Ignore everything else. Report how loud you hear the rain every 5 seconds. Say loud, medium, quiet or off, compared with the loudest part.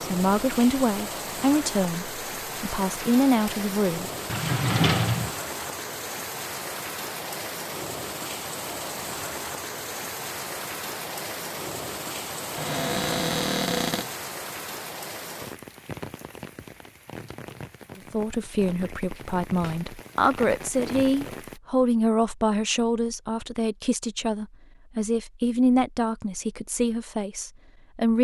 loud, loud, loud, medium, loud, off.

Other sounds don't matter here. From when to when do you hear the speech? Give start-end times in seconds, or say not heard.
0.0-4.1, 17.9-28.1.